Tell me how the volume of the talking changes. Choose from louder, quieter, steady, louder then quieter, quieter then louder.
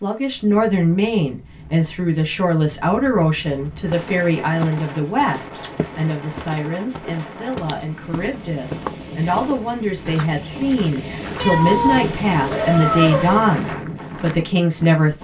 quieter then louder.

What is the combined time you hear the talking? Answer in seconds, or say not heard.
15 s.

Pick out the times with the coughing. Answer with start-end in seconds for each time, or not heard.
not heard.